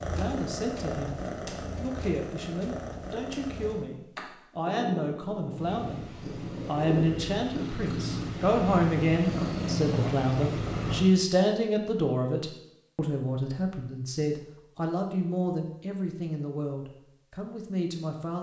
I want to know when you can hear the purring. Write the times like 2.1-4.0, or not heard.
0.0-11.1.